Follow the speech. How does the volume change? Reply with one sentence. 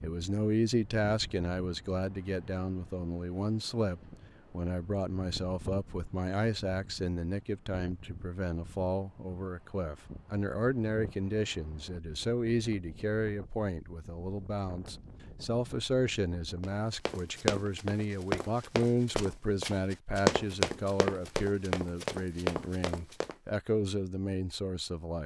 The loudness of the speech stays about the same.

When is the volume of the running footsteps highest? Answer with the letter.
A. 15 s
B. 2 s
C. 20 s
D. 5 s
C.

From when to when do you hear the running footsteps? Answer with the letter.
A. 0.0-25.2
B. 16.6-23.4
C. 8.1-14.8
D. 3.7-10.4
B.